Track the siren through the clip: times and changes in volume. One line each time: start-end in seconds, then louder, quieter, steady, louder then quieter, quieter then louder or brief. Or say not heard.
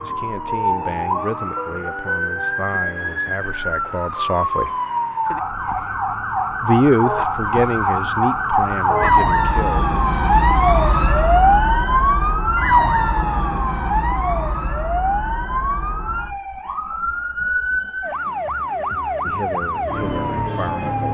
0.0-21.0 louder then quieter.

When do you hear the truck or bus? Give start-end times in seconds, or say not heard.
not heard.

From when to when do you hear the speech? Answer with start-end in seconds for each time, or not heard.
0.0-4.8, 6.6-9.9, 19.2-21.0.